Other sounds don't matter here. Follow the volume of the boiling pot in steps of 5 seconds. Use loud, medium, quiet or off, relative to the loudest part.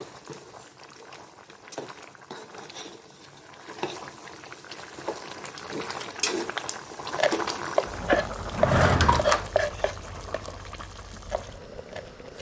medium, loud, medium.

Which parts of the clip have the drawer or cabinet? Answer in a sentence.
You can hear the drawer or cabinet from 8.5 to 9.4 s.